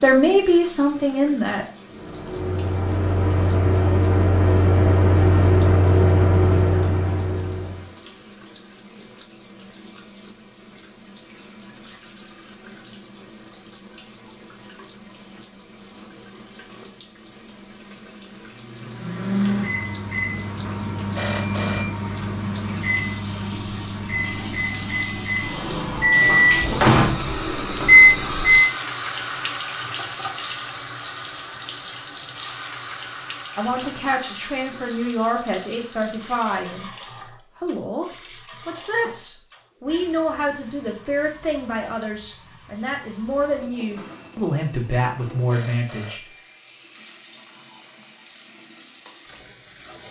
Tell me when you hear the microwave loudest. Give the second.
28 s.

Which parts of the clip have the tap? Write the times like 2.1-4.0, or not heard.
0.0-50.0.